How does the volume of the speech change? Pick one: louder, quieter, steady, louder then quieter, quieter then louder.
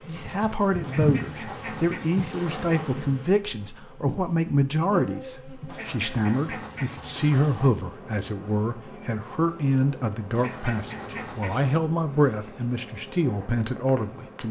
steady.